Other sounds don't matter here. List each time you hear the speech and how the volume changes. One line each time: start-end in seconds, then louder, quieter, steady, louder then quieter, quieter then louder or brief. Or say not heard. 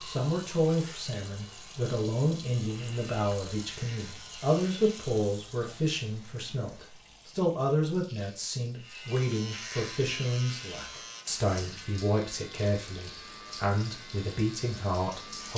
0.0-15.5 steady.